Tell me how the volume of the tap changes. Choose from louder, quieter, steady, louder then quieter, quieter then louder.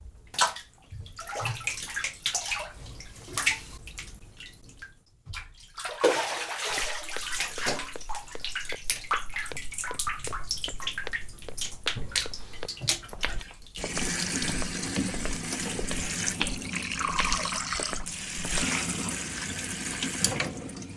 steady.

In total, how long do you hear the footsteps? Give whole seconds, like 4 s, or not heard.
12 s.